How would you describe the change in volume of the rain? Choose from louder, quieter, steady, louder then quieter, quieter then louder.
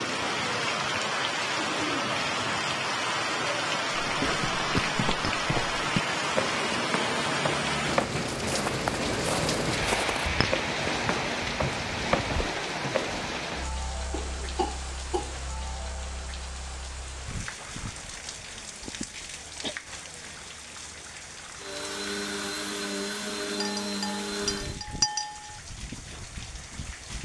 quieter.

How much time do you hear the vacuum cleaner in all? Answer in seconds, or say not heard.
3 s.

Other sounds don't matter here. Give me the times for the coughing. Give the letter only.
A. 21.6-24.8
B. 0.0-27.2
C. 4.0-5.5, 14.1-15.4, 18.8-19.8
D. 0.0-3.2
C.